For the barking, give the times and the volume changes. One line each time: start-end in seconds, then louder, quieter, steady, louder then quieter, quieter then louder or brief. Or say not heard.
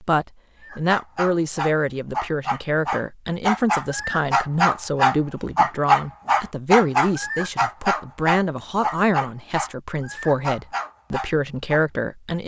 0.6-11.8 louder then quieter.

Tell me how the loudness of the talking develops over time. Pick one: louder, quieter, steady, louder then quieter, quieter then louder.
steady.